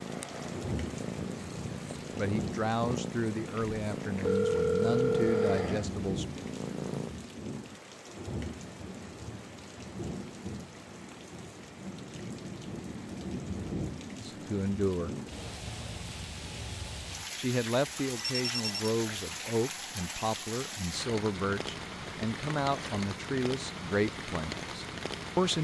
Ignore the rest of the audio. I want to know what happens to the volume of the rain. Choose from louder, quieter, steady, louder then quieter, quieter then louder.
steady.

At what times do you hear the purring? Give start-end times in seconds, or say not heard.
0.0-7.2.